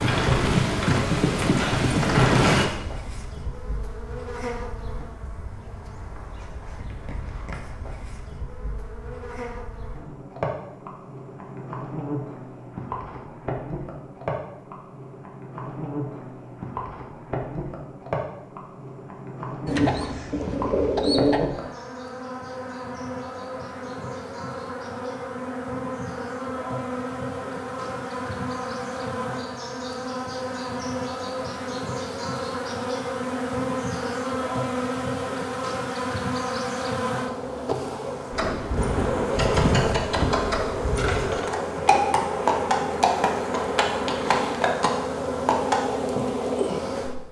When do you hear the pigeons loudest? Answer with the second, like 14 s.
21 s.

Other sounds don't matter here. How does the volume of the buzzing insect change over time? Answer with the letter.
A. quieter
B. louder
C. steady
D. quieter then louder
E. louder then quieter
B.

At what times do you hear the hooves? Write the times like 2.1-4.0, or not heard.
0.0-2.6, 38.3-45.8.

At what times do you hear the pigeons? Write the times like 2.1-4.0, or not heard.
19.6-21.5.